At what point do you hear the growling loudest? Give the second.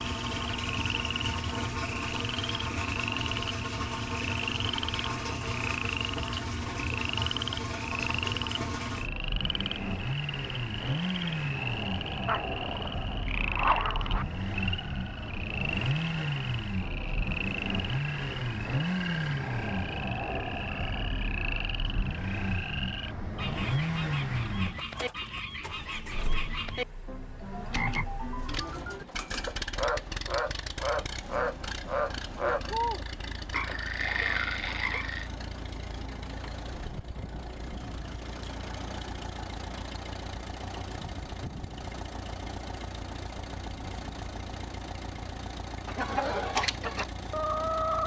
14 s.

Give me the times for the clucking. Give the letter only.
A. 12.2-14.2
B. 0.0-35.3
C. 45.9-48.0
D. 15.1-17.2
C.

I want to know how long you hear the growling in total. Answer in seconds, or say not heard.
2 s.